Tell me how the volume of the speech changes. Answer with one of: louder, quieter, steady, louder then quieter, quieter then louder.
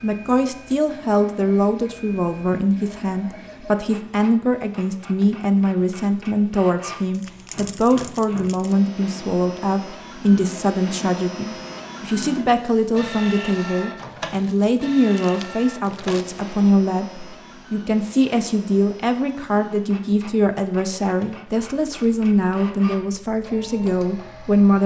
steady.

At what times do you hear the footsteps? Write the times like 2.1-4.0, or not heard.
not heard.